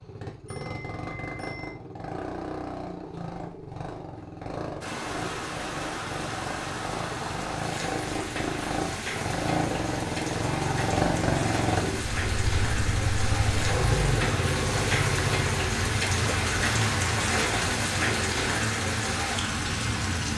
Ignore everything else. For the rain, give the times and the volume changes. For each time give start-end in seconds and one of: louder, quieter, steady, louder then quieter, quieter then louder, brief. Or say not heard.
4.8-20.3 louder.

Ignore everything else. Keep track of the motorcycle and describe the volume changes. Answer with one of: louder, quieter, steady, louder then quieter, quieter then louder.
louder then quieter.